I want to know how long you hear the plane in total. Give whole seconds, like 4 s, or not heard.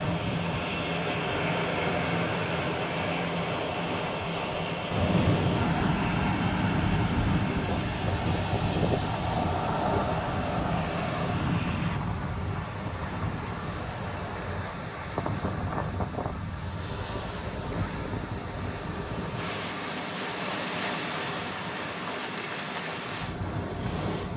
12 s.